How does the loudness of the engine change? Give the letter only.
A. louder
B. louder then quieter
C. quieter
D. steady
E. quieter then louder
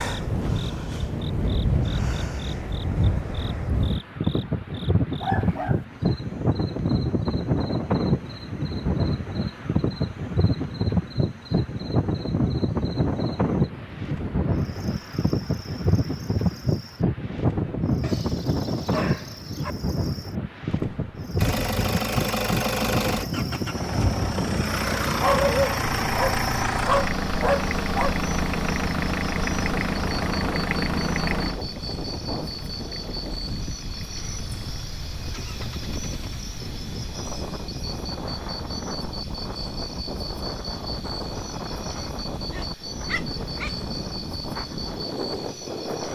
C.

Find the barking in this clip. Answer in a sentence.
The barking can be heard from 5.2 to 5.8 s, from 18.0 to 19.8 s, from 25.2 to 28.1 s and from 42.5 to 43.7 s.